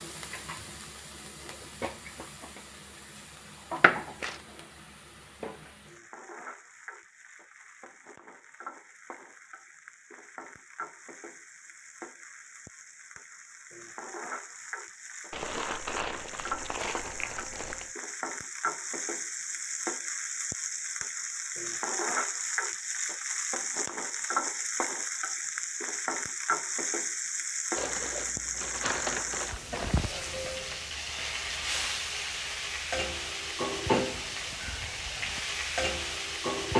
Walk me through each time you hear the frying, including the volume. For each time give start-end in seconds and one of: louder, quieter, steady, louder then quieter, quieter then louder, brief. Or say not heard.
0.0-36.7 louder.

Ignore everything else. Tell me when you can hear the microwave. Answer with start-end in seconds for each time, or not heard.
not heard.